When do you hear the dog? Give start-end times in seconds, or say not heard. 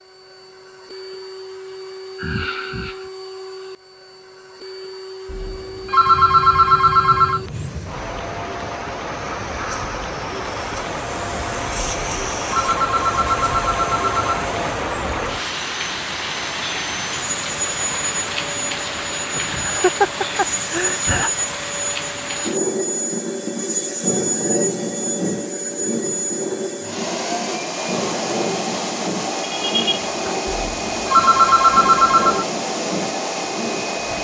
not heard.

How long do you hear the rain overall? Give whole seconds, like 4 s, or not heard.
28 s.